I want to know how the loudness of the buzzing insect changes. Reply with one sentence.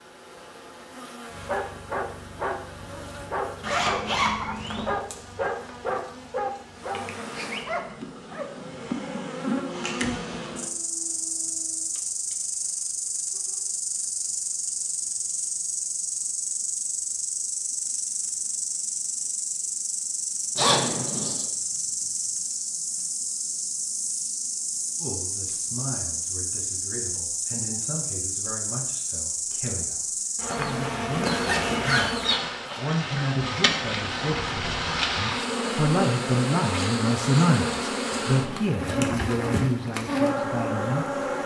The loudness of the buzzing insect goes up.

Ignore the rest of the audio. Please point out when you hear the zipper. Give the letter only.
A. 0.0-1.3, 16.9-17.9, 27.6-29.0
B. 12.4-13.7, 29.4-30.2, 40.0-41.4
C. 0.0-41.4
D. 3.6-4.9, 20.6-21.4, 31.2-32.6
D.